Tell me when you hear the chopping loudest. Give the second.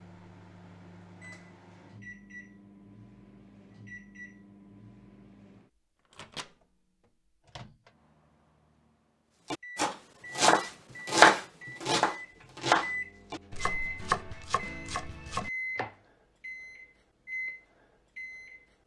11 s.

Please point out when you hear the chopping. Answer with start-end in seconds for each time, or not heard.
9.5-15.9.